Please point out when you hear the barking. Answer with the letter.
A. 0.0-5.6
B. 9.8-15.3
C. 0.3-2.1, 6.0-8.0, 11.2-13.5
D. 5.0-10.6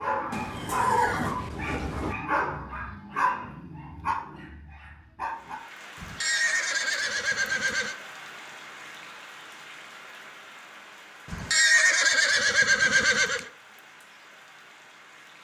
A.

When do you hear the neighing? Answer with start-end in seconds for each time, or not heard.
0.3-2.1, 6.0-8.0, 11.2-13.5.